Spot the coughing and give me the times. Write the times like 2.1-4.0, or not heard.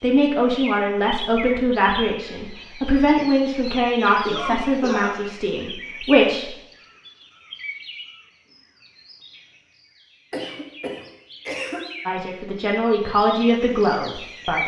4.2-5.2, 10.3-11.8.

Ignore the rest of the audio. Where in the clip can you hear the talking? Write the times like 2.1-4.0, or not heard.
0.0-6.5, 12.1-14.6.